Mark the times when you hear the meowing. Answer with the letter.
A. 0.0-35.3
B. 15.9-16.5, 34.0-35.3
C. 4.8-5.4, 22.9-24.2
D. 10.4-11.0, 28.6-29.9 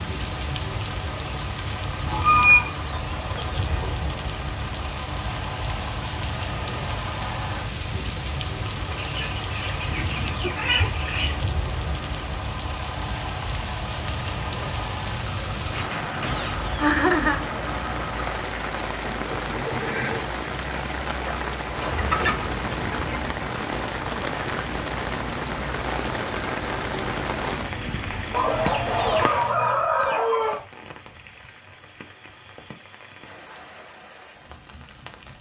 D.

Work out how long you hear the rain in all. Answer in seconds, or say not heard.
35 s.